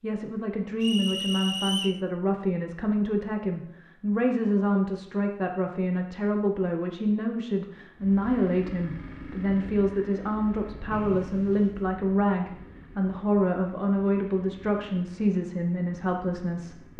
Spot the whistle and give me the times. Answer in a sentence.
You can hear the whistle from 0.8 to 2.0 s and from 10.9 to 11.8 s.